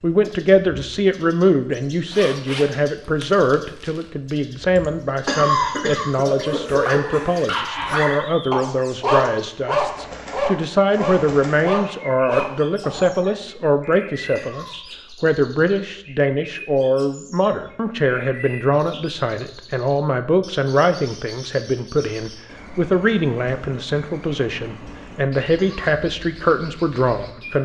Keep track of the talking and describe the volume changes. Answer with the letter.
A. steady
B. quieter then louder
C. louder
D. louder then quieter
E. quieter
A.